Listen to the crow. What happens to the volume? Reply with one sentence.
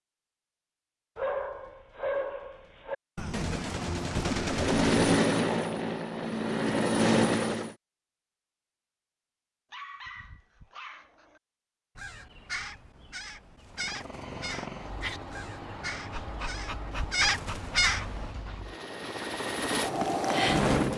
The volume of the crow goes up.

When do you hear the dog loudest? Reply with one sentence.
The loudest moment of the dog is at 2 seconds.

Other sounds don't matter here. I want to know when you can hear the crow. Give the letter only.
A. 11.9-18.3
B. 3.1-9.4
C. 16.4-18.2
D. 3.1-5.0
A.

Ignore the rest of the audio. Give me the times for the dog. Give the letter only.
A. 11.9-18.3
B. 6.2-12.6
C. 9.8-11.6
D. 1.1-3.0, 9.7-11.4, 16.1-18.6
D.